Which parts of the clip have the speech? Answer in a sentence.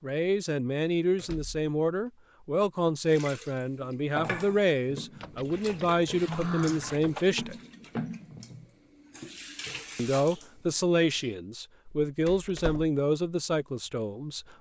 The speech can be heard from 0.0 to 7.5 s and from 9.9 to 14.5 s.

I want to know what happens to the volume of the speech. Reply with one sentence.
The loudness of the speech stays about the same.